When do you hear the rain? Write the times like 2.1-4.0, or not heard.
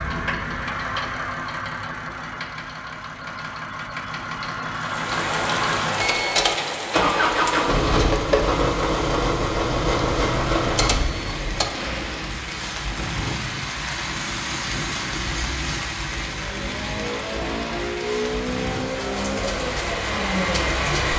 4.8-21.1.